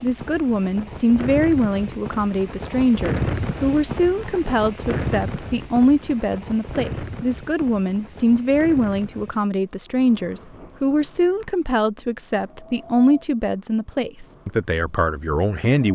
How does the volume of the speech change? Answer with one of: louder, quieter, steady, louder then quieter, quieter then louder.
steady.